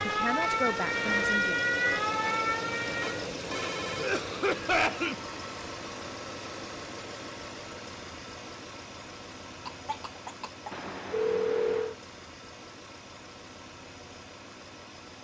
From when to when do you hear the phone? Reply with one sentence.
The phone can be heard from 3.0 to 4.2 s and from 10.7 to 11.9 s.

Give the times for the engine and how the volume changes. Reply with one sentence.
You can hear the engine from 0.0 to 15.1 s, getting quieter.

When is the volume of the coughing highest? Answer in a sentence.
The volume of the coughing peaks at 5 seconds.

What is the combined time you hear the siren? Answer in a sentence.
You can hear the siren for 3 seconds altogether.